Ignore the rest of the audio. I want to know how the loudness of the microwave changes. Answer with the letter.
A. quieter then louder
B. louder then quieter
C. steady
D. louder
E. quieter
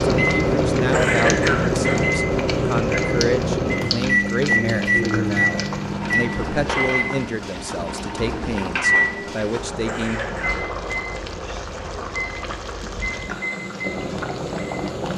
E.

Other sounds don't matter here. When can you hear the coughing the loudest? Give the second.
1 s.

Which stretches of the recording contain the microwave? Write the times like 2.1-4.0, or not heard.
0.0-15.1.